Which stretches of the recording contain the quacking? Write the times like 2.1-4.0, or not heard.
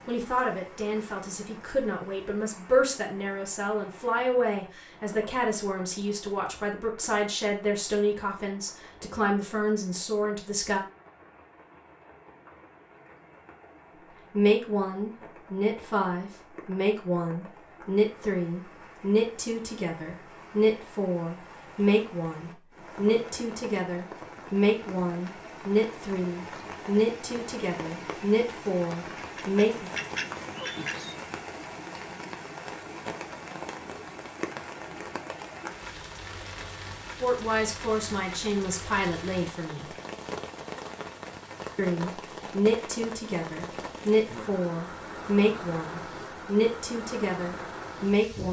29.1-31.1.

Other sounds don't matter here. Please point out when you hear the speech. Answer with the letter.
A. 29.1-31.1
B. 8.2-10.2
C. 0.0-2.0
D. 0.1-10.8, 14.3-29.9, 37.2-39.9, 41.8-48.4
D.